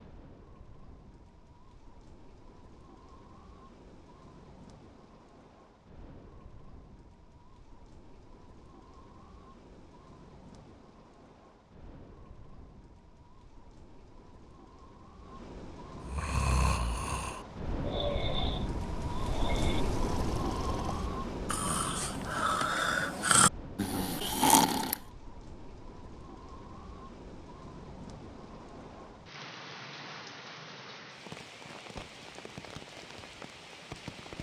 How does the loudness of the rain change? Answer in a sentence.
The volume of the rain goes up, then down.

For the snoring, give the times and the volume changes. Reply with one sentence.
You can hear the snoring from 16.1 to 25.0 s, getting quieter then louder.